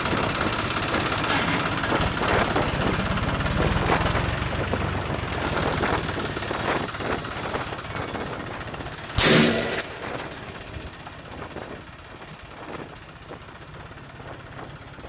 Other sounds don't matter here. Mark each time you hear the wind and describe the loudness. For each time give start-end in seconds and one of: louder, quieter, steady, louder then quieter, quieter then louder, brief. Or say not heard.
0.0-15.0 quieter.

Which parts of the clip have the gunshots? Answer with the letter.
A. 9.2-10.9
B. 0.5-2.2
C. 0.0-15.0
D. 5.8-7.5
A.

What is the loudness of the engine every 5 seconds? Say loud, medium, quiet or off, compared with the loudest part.
loud, medium, quiet.